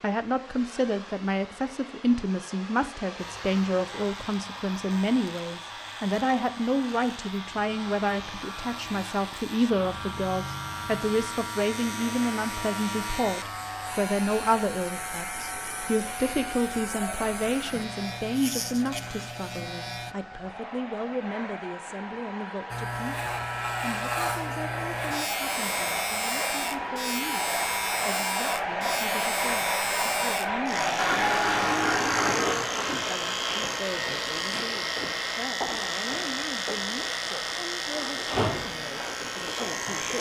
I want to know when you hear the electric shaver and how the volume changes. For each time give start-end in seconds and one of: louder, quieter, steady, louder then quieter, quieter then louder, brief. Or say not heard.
3.1-20.1 louder
22.7-40.1 steady.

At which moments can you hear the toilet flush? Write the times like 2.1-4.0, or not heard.
30.9-32.7.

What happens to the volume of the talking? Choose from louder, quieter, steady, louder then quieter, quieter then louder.
quieter.